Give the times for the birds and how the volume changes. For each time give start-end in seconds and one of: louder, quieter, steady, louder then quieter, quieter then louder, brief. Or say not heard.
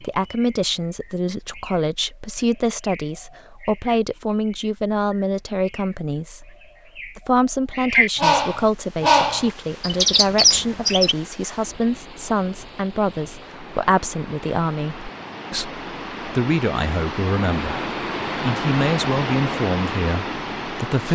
0.0-11.2 louder.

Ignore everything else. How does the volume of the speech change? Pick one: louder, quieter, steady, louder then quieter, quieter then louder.
steady.